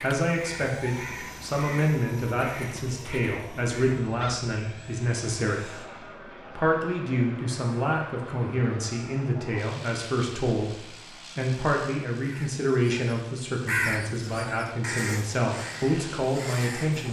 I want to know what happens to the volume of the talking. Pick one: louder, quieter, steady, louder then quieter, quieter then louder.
steady.